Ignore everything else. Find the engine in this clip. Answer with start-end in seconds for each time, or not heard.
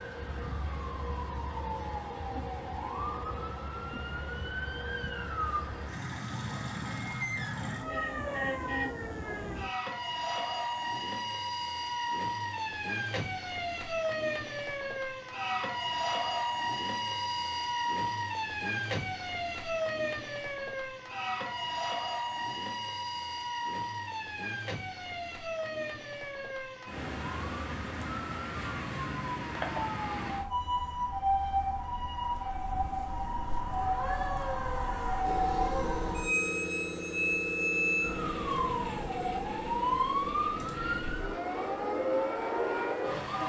35.2-43.4.